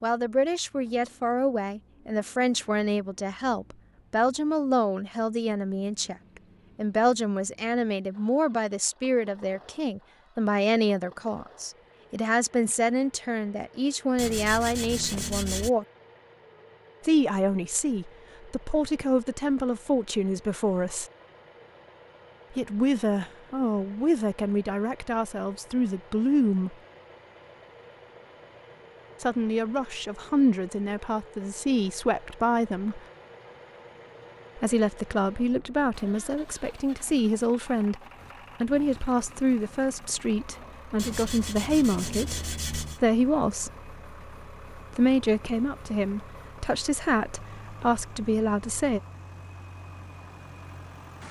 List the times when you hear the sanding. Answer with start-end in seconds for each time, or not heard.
14.2-15.7, 41.0-43.0.